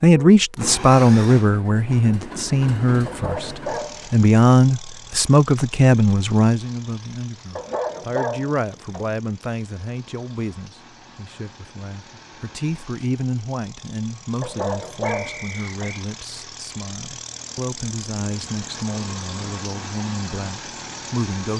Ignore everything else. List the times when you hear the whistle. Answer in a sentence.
You can hear the whistle from 15.1 to 16.1 s.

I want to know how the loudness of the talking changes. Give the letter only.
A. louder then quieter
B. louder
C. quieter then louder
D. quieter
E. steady
D.